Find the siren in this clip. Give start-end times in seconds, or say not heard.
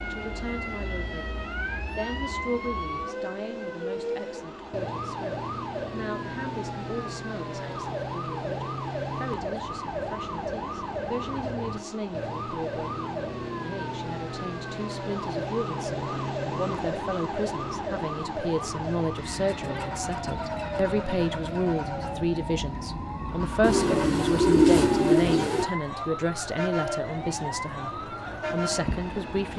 0.0-29.5.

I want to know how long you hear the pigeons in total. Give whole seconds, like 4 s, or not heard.
2 s.